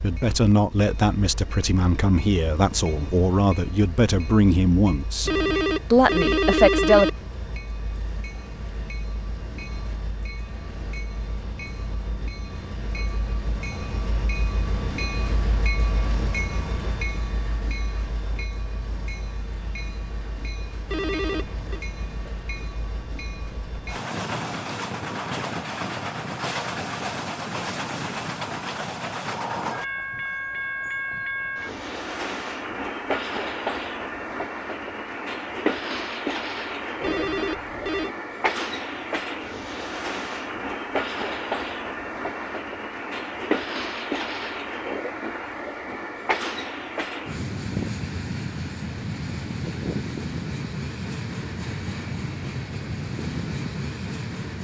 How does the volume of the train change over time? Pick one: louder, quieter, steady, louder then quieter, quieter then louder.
louder.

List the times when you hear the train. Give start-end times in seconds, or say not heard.
0.0-54.5.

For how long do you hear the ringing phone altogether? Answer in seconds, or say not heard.
4 s.